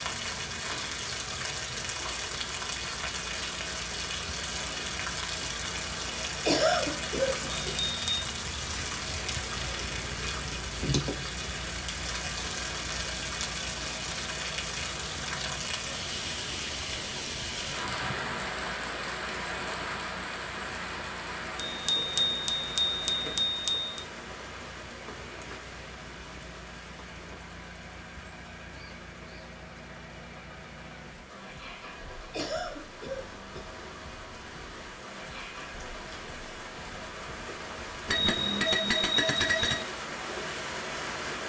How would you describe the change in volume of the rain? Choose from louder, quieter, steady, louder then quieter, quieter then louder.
quieter then louder.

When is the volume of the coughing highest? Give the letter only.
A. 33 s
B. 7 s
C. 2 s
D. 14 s
B.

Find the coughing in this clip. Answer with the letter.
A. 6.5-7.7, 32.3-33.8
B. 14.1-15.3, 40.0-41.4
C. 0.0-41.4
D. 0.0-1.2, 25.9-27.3
A.